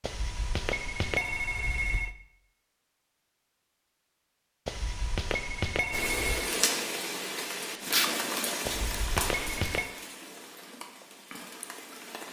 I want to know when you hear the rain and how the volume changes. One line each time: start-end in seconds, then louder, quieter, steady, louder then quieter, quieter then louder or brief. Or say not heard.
5.9-12.2 quieter.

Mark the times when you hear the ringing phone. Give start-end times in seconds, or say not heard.
0.0-2.1, 4.7-6.5, 8.7-9.9.